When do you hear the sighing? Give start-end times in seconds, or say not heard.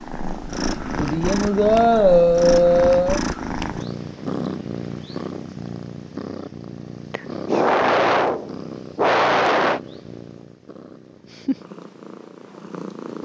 0.9-3.2, 7.1-9.8.